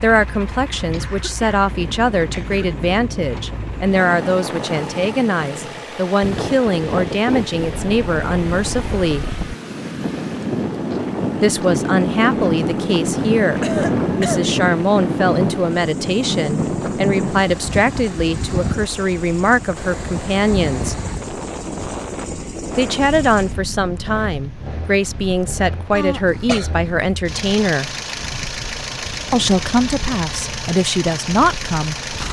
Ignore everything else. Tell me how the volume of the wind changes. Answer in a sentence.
The volume of the wind goes up, then down.